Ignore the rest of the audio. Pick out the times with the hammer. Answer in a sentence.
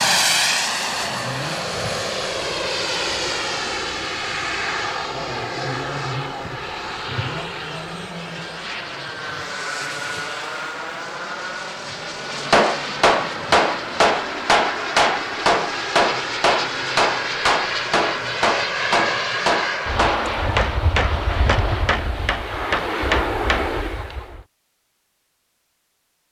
You can hear the hammer from 12.5 to 23.7 s.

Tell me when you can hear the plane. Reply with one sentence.
The plane can be heard from 0.0 to 24.4 s.